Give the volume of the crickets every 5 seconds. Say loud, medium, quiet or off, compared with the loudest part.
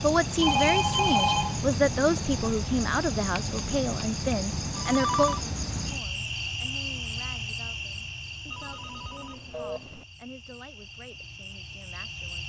loud, loud, medium.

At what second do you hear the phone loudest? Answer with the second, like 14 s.
1 s.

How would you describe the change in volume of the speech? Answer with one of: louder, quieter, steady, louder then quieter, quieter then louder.
quieter.